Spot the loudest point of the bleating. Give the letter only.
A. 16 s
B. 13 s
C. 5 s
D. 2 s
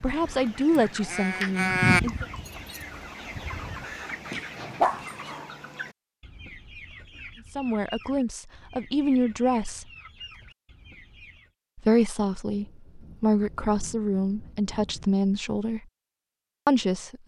D.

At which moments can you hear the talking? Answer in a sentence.
You can hear the talking from 0.0 to 2.2 s, from 7.5 to 9.8 s, from 11.8 to 15.8 s and from 16.6 to 17.2 s.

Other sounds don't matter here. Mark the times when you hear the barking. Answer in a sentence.
You can hear the barking from 4.3 to 5.3 s.